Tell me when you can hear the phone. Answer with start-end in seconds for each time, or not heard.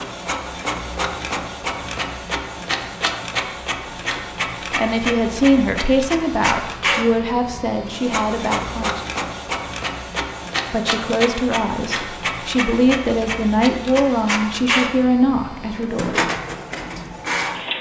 not heard.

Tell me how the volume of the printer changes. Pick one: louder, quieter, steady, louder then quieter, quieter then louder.
steady.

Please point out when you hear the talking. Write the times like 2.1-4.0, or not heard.
4.8-9.0, 10.7-16.1.